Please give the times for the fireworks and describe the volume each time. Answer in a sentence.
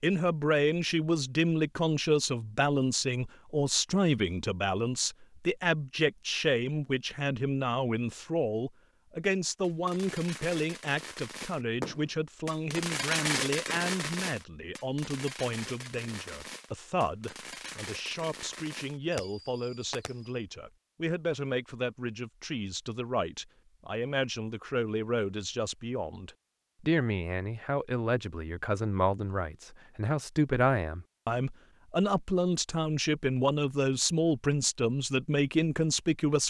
The fireworks can be heard from 9.6 to 20.4 s, getting louder then quieter.